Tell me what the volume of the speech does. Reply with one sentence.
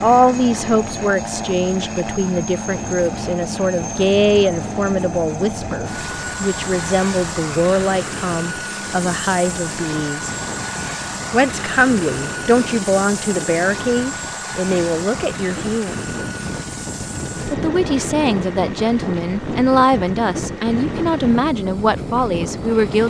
The loudness of the speech stays about the same.